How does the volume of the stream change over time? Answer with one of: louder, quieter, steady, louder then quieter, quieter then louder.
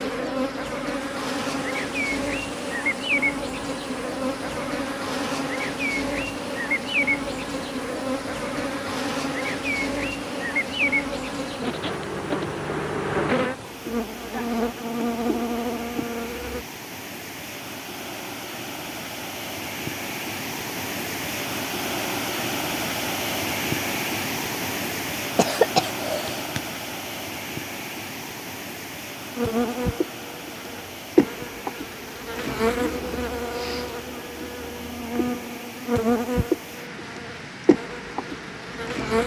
louder then quieter.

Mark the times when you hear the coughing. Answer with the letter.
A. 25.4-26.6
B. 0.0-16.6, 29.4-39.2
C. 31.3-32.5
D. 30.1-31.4
A.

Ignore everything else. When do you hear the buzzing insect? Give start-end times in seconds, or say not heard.
0.0-16.6, 29.4-39.2.